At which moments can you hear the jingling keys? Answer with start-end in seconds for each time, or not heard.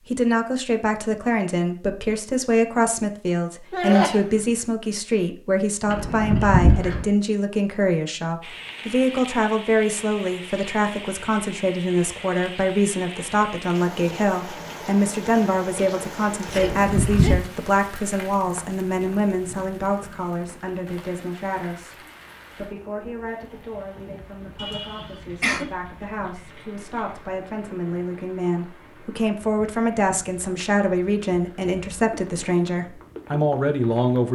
5.8-7.0, 16.5-17.4, 25.0-27.2.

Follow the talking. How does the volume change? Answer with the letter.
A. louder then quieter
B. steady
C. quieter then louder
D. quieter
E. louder
C.